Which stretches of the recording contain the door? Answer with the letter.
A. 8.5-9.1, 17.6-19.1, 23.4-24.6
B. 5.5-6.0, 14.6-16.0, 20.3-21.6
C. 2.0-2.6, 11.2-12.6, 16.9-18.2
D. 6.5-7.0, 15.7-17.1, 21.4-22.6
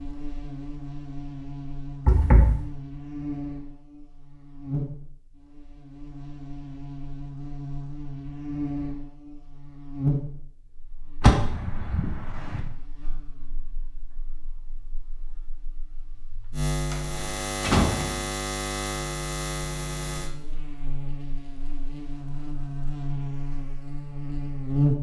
C.